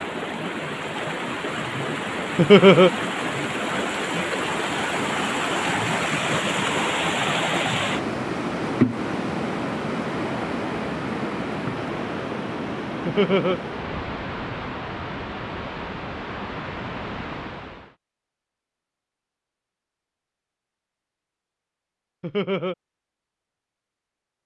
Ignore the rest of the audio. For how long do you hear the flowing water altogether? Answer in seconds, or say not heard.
18 s.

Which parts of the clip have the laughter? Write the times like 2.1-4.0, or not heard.
2.4-2.9, 13.1-13.6, 22.2-22.8.